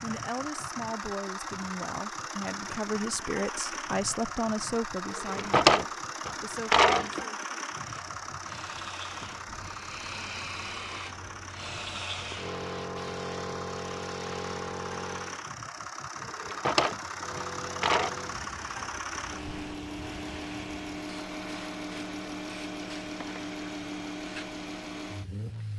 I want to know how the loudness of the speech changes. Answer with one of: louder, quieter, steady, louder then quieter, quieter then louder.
louder then quieter.